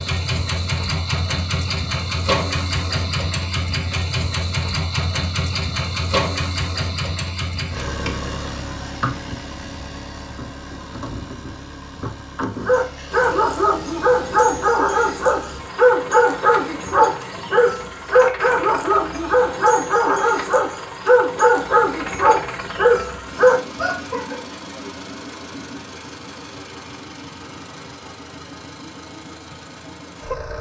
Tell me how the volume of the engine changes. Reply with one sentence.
The volume of the engine goes down.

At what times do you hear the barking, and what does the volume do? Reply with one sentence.
You can hear the barking from 12.7 to 24.4 s, at a steady volume.